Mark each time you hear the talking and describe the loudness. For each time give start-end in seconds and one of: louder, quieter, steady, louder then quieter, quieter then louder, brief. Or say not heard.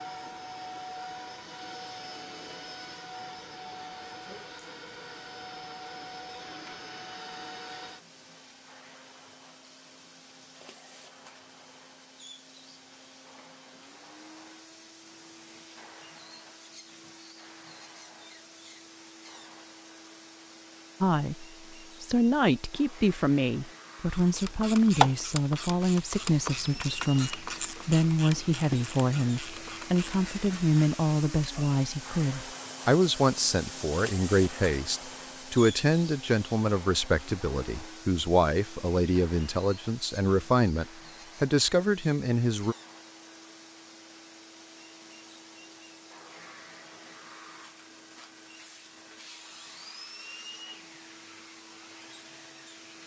21.0-42.8 steady.